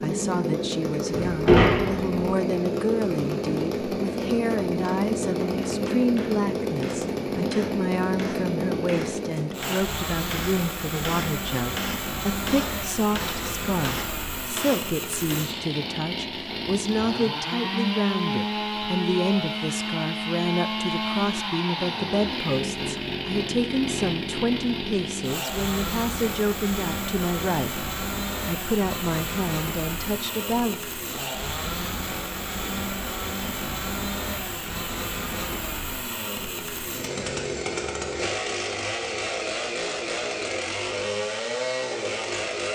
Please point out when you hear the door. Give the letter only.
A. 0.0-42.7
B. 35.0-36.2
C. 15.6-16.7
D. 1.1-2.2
D.